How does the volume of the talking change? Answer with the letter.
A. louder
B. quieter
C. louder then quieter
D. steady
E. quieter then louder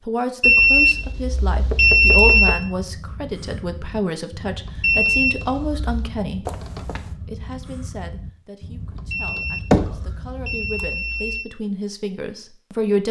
E.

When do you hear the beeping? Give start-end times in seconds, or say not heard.
0.4-2.6, 4.8-6.1, 9.1-11.4.